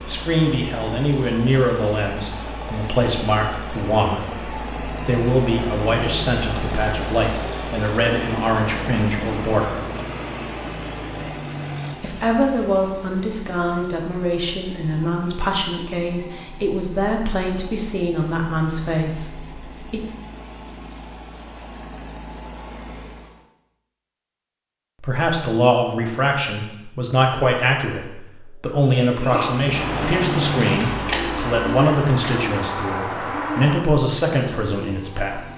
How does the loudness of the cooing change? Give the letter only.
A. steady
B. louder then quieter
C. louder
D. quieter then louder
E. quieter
A.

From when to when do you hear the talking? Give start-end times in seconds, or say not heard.
0.1-9.8, 12.0-20.0, 25.0-35.4.